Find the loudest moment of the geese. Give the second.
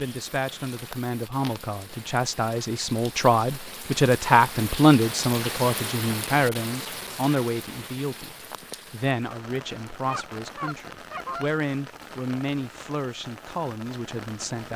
11 s.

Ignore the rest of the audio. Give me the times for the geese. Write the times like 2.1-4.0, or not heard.
10.1-11.5.